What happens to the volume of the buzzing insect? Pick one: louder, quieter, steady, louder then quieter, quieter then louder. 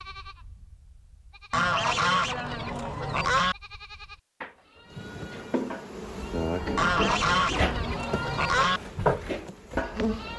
louder then quieter.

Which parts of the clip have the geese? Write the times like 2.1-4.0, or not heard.
1.5-3.5, 6.8-8.8.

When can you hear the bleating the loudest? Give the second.
9 s.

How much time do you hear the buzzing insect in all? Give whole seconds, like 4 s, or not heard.
5 s.